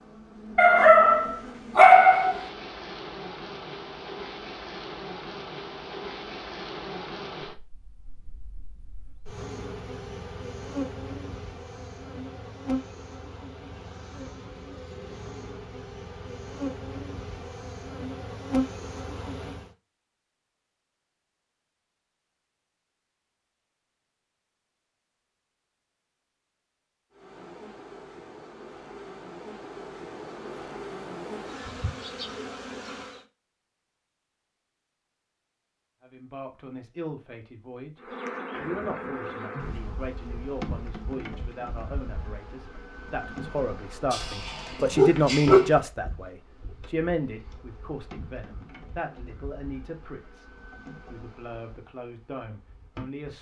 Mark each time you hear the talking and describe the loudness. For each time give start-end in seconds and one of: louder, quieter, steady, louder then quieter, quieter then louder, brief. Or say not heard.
36.0-50.5 louder then quieter
51.1-53.3 brief.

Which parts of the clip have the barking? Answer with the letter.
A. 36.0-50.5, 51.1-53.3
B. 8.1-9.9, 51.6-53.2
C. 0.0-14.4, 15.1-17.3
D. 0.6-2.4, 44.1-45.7
D.